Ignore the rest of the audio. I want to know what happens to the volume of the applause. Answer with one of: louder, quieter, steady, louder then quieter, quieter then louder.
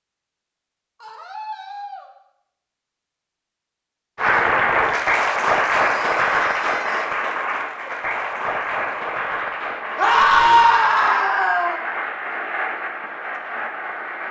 quieter.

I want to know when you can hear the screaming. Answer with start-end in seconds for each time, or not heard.
1.0-2.1, 5.9-7.1, 9.9-11.8.